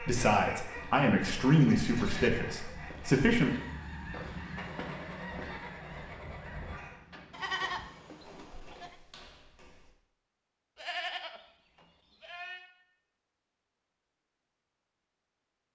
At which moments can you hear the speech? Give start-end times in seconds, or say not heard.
0.0-3.5.